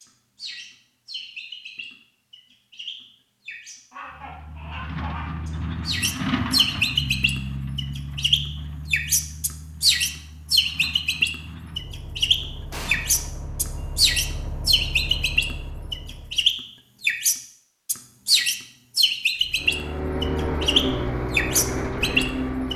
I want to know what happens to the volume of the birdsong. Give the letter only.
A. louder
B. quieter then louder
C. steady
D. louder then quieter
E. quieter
A.